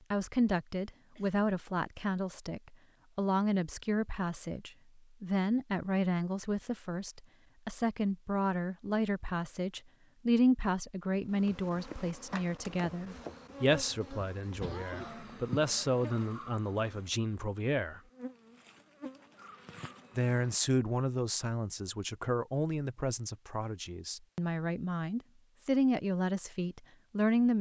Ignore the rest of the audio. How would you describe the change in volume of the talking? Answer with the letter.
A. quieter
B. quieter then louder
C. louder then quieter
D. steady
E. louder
D.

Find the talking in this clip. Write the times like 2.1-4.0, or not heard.
0.1-18.0, 20.1-27.5.